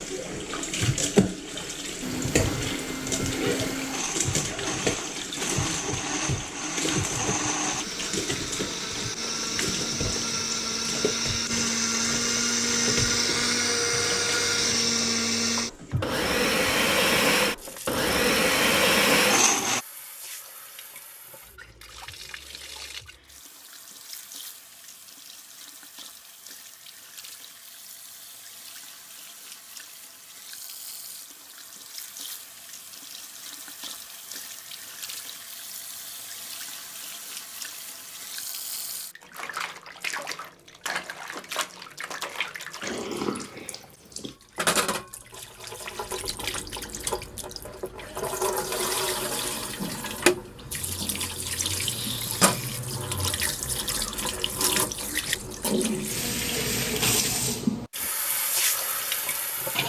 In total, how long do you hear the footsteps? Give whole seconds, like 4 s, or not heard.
not heard.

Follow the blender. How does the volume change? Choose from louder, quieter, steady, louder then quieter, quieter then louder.
louder.